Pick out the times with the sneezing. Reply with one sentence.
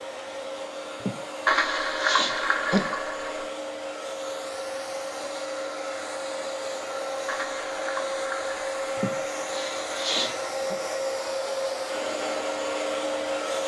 You can hear the sneezing from 1.0 to 3.0 s and from 8.9 to 10.8 s.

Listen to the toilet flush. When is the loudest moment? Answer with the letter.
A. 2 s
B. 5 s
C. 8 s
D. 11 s
A.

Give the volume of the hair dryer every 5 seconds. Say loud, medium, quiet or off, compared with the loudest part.
medium, loud, loud.